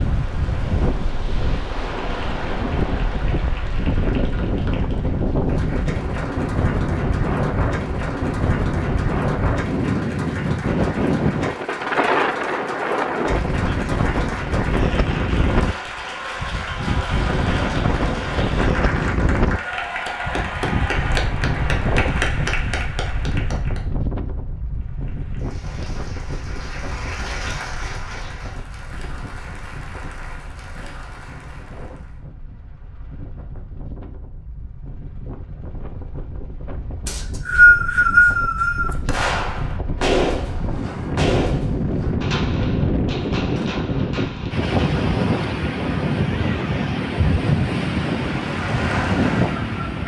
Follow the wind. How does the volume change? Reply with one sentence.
The loudness of the wind goes down, then up.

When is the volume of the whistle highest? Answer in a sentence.
The volume of the whistle peaks at 38 seconds.